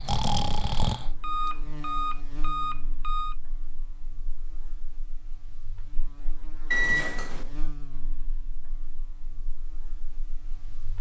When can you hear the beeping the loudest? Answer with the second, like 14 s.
7 s.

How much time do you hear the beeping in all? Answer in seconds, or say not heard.
3 s.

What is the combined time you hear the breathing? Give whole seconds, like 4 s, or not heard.
2 s.